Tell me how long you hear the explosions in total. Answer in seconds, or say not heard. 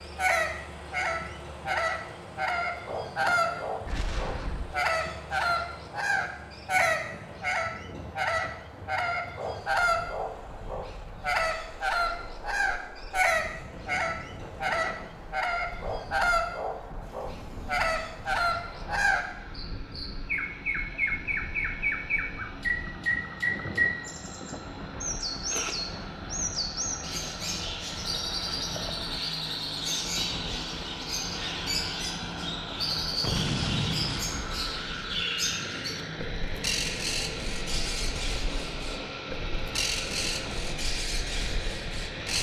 3 s.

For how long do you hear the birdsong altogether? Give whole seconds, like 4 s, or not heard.
42 s.